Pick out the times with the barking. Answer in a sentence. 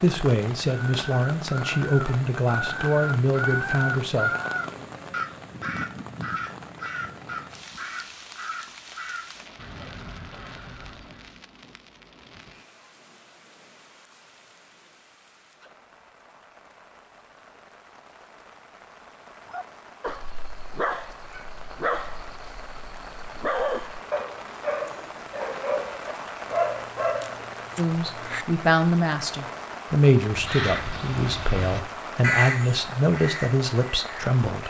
The barking can be heard from 19.4 to 28.4 s.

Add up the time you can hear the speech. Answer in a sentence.
The speech can be heard for 11 seconds in total.